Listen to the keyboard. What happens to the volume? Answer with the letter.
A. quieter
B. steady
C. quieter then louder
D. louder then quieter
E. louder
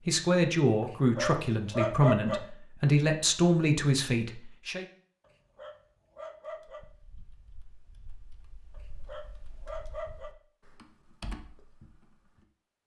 E.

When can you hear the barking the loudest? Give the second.
2 s.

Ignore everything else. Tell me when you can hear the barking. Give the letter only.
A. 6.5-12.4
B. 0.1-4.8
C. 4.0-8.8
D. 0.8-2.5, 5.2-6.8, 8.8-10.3
D.